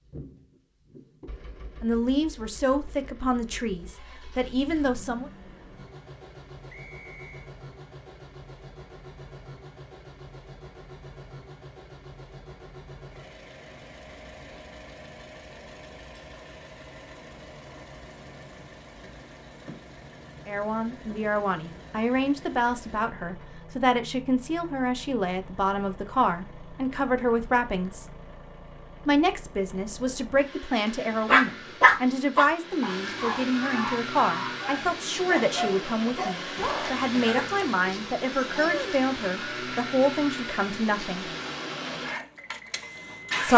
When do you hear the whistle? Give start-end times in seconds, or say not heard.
6.7-7.5.